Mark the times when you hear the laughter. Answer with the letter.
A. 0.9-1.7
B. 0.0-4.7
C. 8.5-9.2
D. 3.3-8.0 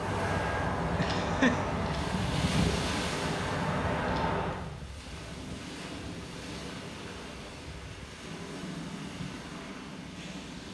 A.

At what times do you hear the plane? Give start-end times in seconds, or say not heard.
0.0-4.7.